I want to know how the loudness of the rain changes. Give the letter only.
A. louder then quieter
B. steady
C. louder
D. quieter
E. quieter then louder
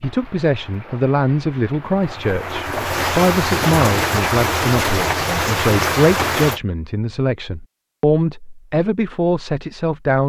C.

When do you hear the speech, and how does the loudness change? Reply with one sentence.
You can hear the speech from 0.0 to 10.2 s, at a steady volume.